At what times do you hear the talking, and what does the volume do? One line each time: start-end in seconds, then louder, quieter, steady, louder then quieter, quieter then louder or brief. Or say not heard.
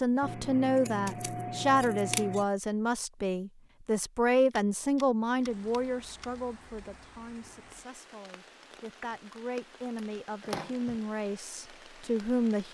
0.0-12.6 quieter then louder.